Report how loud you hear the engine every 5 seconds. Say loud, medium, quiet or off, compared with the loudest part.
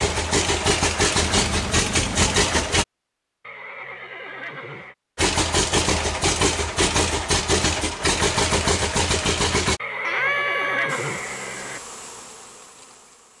loud, loud, off.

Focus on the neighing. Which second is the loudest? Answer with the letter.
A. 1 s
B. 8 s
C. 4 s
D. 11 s
D.